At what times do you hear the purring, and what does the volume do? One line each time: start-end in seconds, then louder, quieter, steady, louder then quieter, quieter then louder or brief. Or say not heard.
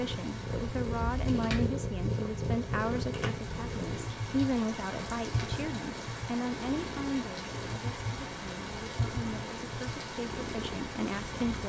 0.0-11.6 quieter.